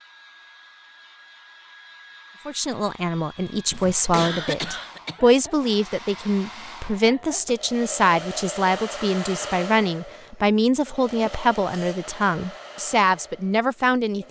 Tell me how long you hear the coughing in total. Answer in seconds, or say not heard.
2 s.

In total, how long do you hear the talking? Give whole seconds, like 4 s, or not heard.
12 s.